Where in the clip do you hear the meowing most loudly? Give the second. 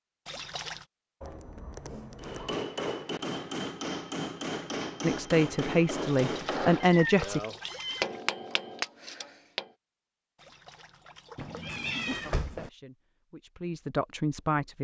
12 s.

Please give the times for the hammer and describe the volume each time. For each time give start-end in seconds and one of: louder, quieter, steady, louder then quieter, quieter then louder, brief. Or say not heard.
2.2-9.7 steady.